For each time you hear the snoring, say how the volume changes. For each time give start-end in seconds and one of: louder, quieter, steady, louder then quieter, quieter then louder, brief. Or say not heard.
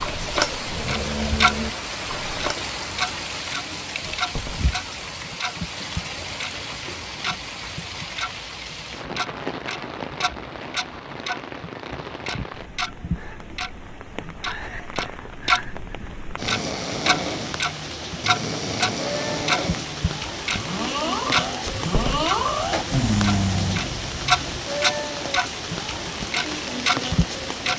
0.0-2.5 brief
16.4-24.6 louder.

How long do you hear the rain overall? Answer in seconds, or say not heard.
28 s.